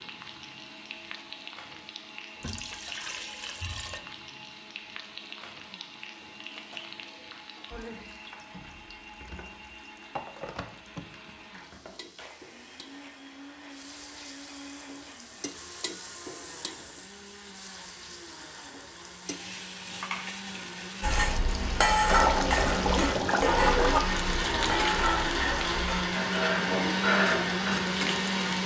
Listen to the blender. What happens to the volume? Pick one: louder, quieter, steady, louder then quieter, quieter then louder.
louder.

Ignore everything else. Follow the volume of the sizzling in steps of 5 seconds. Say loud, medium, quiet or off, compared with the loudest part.
medium, medium, medium, medium, loud, loud.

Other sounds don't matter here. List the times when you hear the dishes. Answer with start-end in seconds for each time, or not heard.
21.0-27.7.